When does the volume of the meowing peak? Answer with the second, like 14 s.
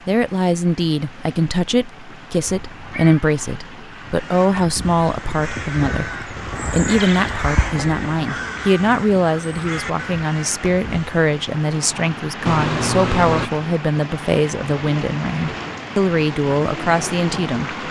13 s.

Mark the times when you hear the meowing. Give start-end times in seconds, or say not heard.
2.5-3.2, 12.4-13.5.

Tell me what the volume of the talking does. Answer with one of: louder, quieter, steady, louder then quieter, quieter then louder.
steady.